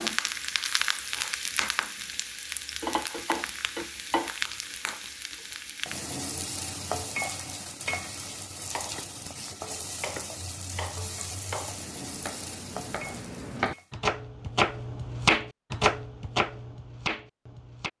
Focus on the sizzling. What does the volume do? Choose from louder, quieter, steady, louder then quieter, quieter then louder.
quieter.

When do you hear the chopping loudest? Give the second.
15 s.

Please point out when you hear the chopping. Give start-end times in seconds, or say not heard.
8.7-17.9.